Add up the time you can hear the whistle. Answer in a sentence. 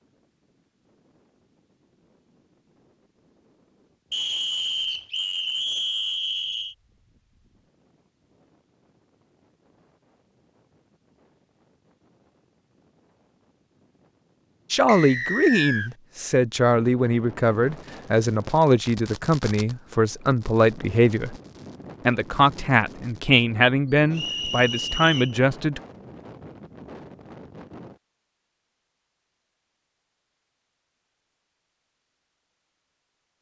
You can hear the whistle for 5 seconds altogether.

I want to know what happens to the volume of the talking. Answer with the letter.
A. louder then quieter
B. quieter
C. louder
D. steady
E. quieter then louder
D.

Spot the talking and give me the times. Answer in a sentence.
You can hear the talking from 14.7 to 21.4 s and from 22.1 to 25.8 s.